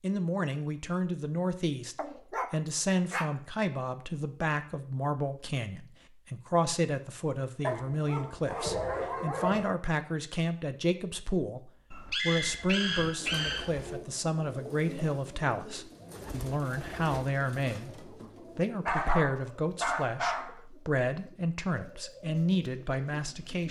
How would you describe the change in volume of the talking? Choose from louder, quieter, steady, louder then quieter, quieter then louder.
steady.